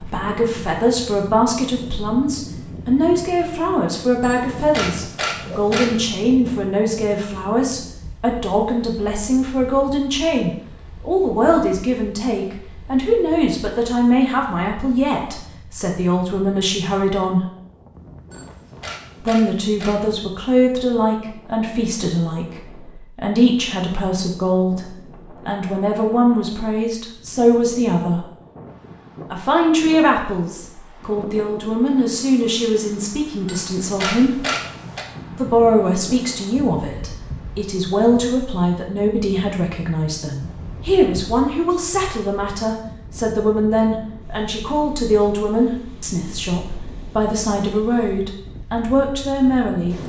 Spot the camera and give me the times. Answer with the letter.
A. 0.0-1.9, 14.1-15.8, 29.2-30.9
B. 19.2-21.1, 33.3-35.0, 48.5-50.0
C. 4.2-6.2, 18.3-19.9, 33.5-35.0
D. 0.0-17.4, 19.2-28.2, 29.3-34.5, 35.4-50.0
C.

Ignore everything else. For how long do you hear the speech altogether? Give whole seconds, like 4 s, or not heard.
46 s.